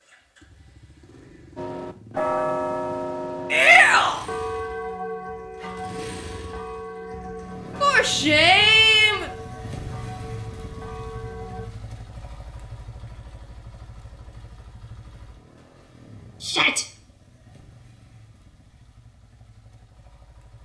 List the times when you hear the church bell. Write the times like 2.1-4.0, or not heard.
1.6-11.7.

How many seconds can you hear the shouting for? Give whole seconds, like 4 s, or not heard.
3 s.